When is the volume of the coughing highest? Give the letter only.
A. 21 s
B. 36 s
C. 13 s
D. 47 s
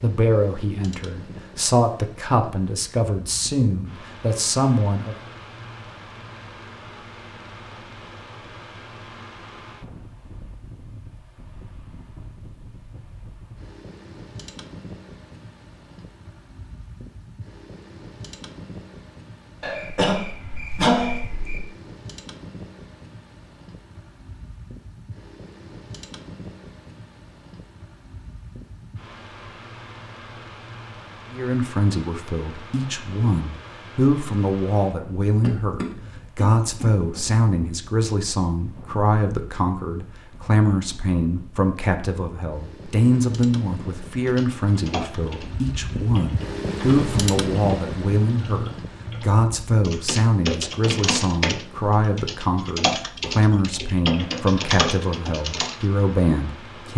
A.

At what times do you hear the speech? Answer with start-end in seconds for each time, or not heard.
0.0-5.2, 31.3-56.9.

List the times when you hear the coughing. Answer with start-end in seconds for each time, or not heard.
19.6-21.6, 35.4-37.2.